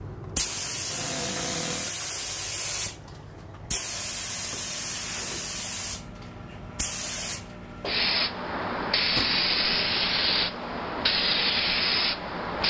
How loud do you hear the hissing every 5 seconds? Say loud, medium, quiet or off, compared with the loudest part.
medium, loud, loud.